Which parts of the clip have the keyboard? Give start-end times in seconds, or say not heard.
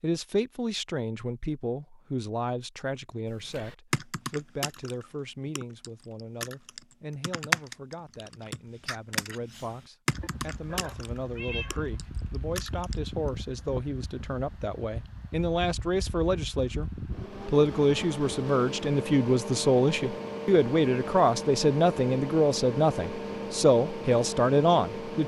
3.2-12.9.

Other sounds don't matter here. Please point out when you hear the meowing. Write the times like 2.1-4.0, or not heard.
10.2-11.9.